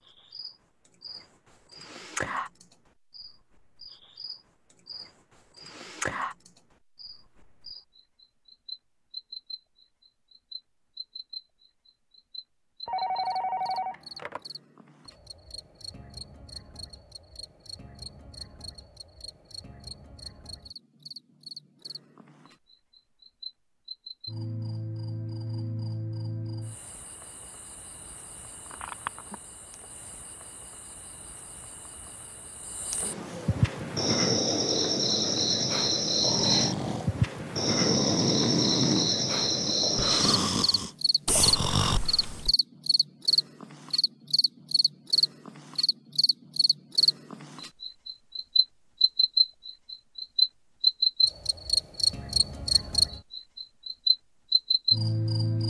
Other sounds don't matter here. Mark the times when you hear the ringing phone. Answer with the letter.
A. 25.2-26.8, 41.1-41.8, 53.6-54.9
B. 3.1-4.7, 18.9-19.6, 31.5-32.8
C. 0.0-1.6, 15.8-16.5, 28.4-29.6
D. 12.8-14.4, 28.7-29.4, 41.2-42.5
D.